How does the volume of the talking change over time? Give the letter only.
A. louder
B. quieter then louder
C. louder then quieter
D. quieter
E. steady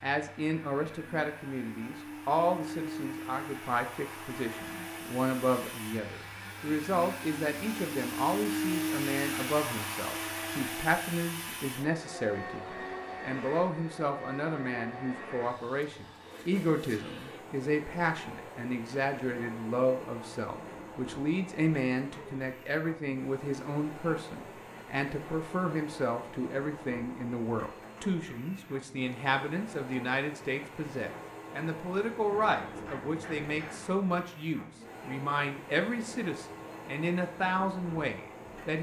E.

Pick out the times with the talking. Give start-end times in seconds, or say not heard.
0.0-38.7.